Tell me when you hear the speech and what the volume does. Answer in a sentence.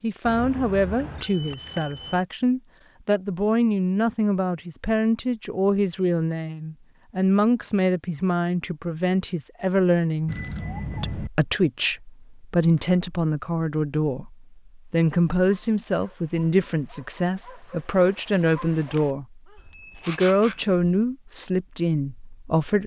You can hear the speech from 0.0 to 10.3 s, at a steady volume; from 11.0 to 19.4 s, at a steady volume; and briefly from 20.1 to 22.8 s.